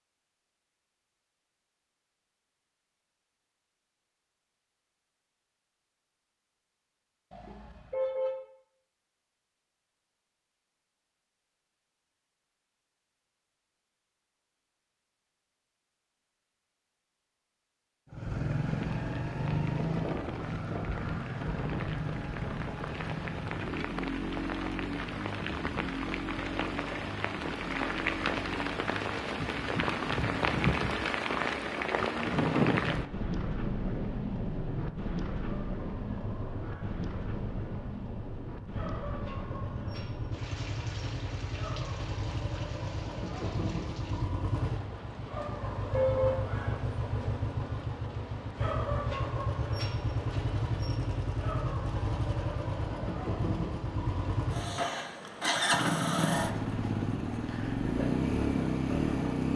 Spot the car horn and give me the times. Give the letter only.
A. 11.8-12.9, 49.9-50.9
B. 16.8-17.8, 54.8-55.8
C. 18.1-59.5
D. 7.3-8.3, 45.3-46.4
D.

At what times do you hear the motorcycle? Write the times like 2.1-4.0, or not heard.
18.1-59.5.